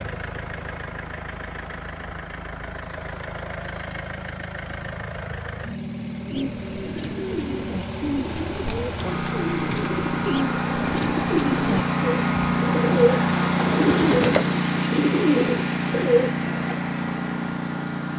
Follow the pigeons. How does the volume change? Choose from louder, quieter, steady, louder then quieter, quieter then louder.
louder.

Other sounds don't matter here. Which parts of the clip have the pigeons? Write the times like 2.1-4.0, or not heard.
6.2-16.8.